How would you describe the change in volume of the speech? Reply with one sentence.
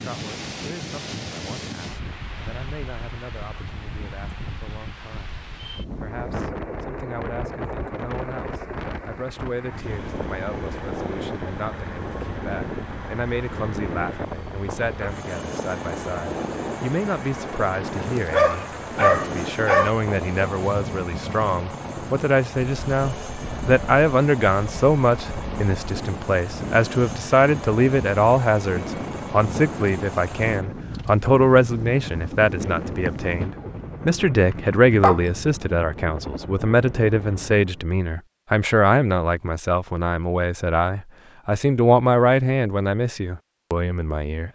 The loudness of the speech goes up.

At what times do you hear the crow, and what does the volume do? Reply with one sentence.
You can't hear the crow here.